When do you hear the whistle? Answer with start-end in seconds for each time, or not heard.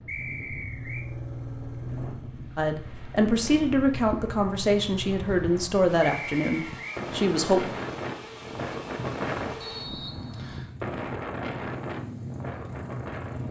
0.1-1.1, 6.0-7.0, 9.6-10.7.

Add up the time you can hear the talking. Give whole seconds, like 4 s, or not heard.
5 s.